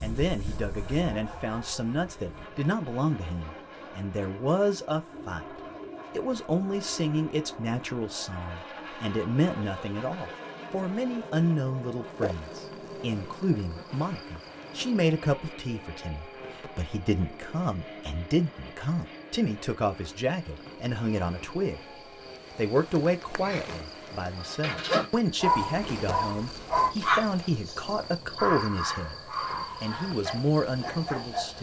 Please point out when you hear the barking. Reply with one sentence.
You can hear the barking from 0.0 to 2.5 s and from 24.4 to 31.5 s.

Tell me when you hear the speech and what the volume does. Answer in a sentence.
You can hear the speech from 0.0 to 21.8 s, at a steady volume; from 22.6 to 29.2 s, at a steady volume; and briefly from 29.8 to 31.5 s.